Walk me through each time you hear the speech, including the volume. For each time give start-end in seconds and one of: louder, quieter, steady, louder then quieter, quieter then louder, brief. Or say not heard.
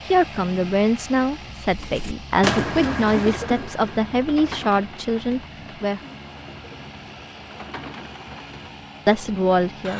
0.1-6.0 steady
9.1-9.9 brief.